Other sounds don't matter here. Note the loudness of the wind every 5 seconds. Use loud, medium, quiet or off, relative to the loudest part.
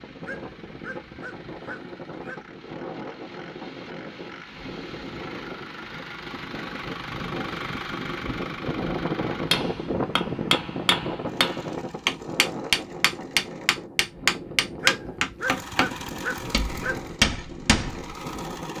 medium, loud, loud, medium.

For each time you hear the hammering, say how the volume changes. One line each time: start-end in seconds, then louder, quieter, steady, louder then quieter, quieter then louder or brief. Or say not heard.
9.5-18.1 steady.